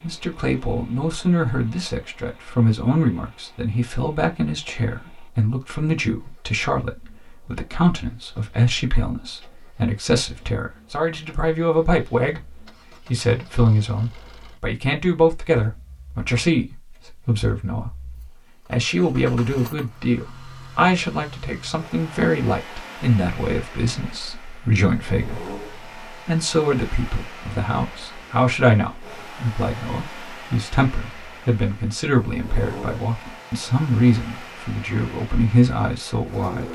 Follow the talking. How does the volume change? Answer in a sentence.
The volume of the talking stays about the same.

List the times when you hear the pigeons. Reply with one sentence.
You can't hear the pigeons here.